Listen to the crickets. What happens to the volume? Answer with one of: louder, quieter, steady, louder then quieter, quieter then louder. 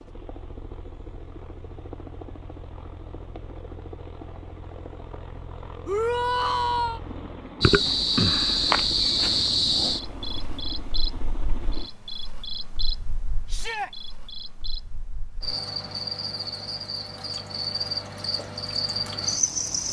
quieter then louder.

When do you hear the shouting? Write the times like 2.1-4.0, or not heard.
5.8-7.0, 13.4-13.9.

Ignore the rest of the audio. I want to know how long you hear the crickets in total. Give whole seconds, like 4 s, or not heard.
12 s.